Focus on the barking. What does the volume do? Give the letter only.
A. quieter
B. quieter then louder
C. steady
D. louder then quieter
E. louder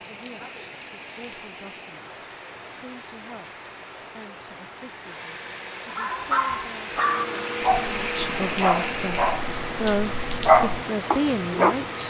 B.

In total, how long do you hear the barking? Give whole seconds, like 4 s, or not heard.
6 s.